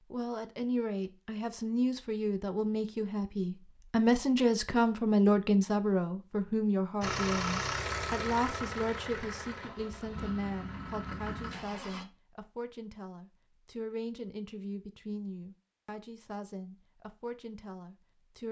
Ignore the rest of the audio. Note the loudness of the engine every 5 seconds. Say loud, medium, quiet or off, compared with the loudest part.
off, loud, medium, off.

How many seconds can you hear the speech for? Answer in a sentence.
You can hear the speech for 18 seconds altogether.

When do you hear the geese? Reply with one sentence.
You can't hear the geese here.